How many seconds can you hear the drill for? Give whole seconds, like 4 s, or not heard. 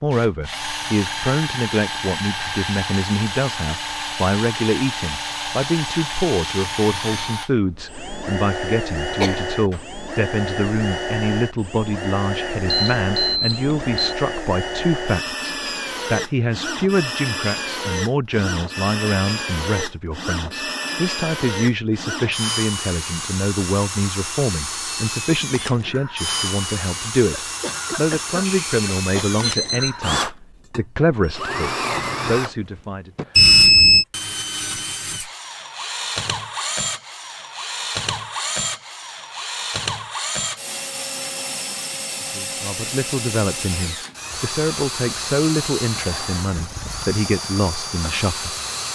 49 s.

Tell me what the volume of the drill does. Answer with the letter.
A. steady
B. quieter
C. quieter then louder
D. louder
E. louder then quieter
A.